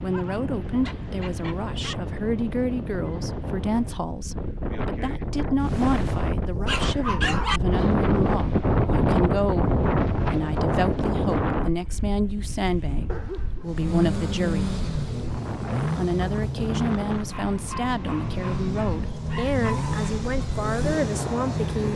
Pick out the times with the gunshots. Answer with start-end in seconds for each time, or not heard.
not heard.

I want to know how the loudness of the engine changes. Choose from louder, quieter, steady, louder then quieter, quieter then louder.
quieter then louder.